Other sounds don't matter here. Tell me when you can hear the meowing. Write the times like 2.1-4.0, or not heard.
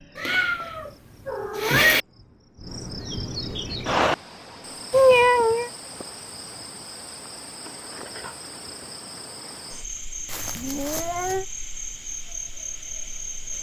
0.1-2.0, 4.9-5.7, 10.2-11.4.